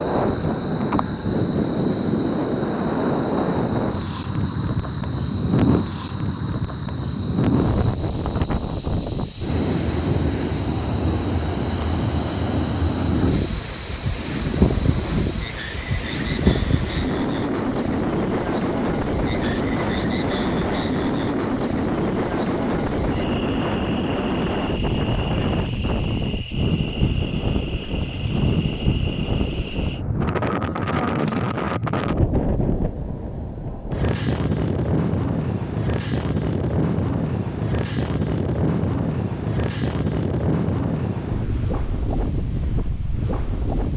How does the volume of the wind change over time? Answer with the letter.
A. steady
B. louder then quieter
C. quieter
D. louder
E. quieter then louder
A.